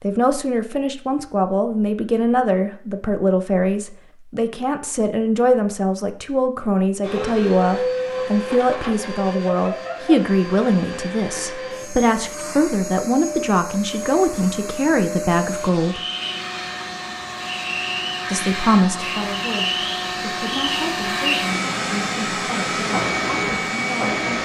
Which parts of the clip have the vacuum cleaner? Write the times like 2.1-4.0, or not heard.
7.0-24.4.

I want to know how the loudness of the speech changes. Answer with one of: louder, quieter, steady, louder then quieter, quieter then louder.
quieter.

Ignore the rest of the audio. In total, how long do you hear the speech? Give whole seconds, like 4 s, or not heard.
22 s.